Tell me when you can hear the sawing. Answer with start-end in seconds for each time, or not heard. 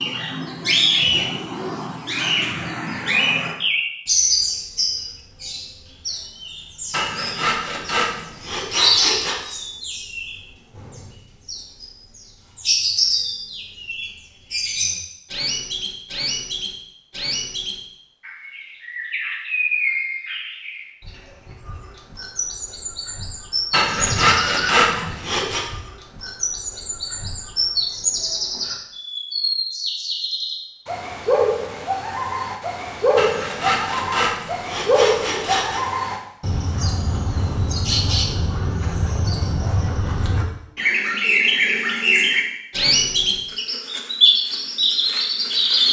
6.9-9.4, 23.7-25.6, 33.1-35.8.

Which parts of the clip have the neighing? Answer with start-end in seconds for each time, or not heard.
23.9-25.2.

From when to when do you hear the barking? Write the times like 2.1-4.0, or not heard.
not heard.